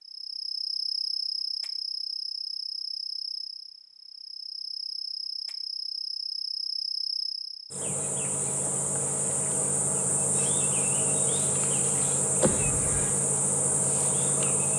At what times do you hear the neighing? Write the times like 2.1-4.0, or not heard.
12.4-13.2.